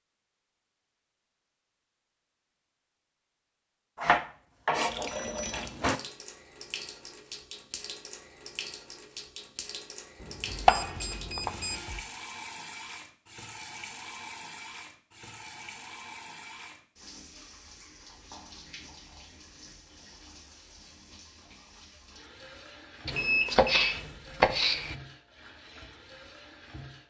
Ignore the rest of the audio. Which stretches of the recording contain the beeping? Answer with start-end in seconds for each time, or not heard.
5.0-5.7, 10.2-11.8, 23.1-23.9.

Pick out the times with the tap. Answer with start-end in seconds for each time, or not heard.
4.7-27.0.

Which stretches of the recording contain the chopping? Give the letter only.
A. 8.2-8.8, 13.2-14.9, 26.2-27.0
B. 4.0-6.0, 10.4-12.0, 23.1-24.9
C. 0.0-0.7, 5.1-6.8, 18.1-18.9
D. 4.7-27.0
B.